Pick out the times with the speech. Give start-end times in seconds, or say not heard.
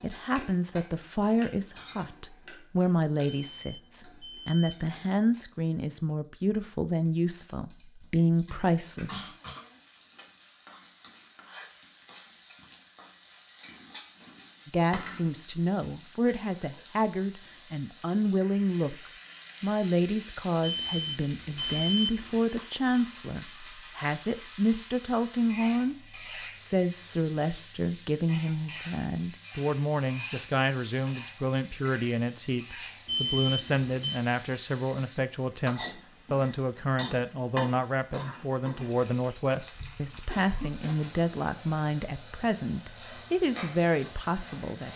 0.0-9.3, 14.7-25.9, 26.6-44.9.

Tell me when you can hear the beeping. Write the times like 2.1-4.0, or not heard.
3.3-4.8, 20.6-22.6, 33.0-34.2.